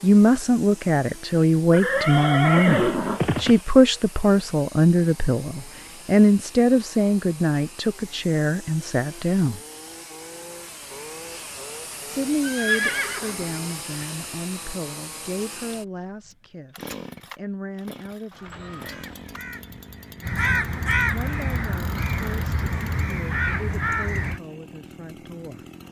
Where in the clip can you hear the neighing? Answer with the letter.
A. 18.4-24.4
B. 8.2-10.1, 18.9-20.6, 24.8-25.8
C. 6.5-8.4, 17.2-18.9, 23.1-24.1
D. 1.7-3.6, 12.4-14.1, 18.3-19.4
D.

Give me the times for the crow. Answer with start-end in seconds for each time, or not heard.
18.4-24.4.